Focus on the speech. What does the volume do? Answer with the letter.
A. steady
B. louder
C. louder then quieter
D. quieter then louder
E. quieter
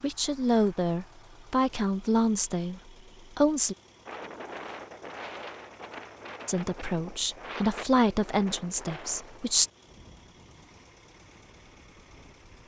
A.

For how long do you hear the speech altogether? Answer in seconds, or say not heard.
7 s.